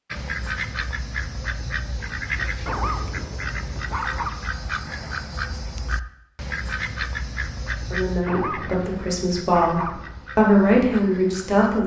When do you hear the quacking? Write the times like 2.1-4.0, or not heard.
0.1-11.8.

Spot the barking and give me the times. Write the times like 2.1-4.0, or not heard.
2.6-4.3, 8.2-10.1.